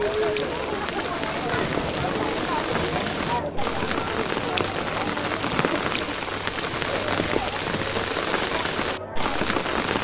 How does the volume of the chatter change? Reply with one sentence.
The volume of the chatter goes down.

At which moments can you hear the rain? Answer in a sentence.
The rain can be heard from 0.0 to 9.9 s.